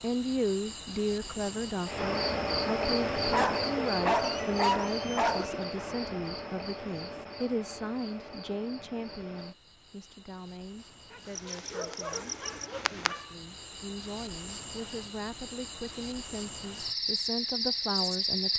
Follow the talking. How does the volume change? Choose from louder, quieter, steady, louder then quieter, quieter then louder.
quieter then louder.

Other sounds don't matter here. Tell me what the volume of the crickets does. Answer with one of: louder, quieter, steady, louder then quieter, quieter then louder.
quieter then louder.